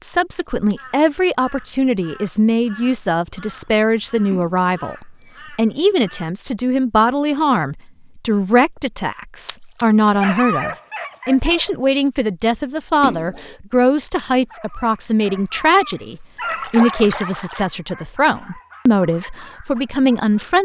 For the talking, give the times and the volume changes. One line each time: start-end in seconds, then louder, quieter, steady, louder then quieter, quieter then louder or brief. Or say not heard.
0.0-20.6 steady.